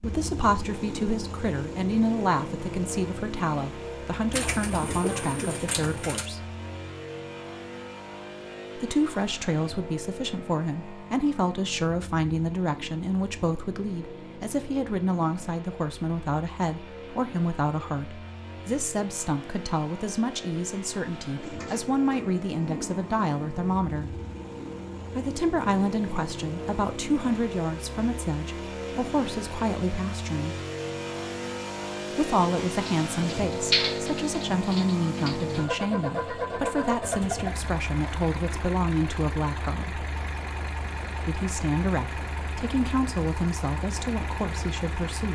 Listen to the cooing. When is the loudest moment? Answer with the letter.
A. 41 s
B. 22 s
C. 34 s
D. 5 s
C.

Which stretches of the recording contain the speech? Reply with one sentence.
The speech can be heard from 0.0 to 6.5 s, from 8.8 to 24.2 s, from 25.1 to 30.6 s, from 32.1 to 40.0 s and from 41.2 to 45.3 s.